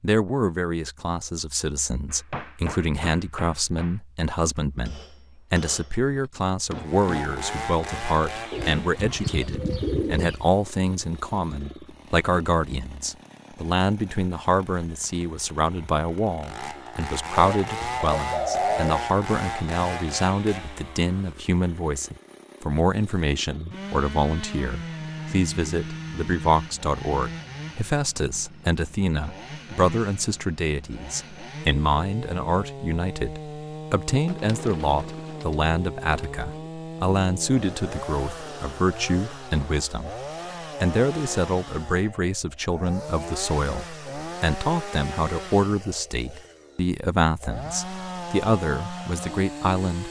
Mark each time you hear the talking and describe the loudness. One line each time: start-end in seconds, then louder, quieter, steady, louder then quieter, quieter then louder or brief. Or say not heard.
0.0-40.1 steady
40.8-50.0 steady.